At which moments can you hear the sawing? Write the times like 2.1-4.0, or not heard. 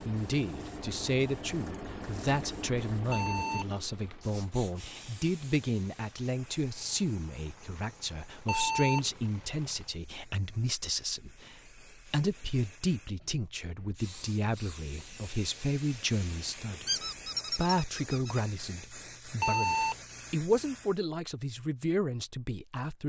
not heard.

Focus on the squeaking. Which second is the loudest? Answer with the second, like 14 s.
17 s.